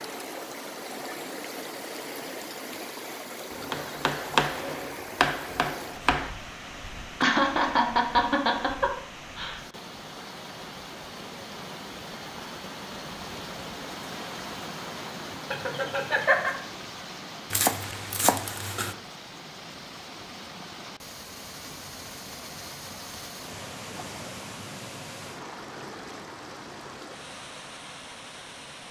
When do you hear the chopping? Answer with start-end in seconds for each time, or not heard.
3.5-6.3, 17.5-18.9.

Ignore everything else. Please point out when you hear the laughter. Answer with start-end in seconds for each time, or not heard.
7.2-9.6, 15.5-16.6.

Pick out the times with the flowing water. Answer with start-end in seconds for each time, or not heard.
0.0-28.8.